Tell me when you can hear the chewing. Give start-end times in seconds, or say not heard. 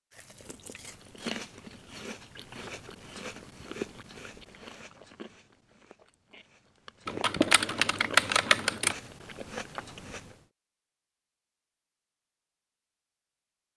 0.1-10.4.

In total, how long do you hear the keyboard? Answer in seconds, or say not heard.
2 s.